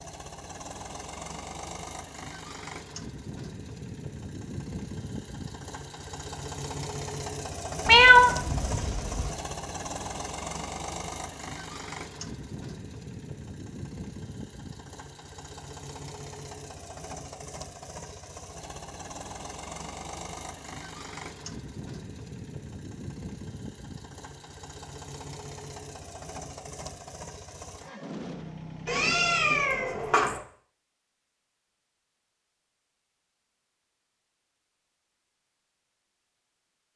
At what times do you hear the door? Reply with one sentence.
The door can't be heard in this clip.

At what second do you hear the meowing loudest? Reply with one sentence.
The volume of the meowing peaks at 8 seconds.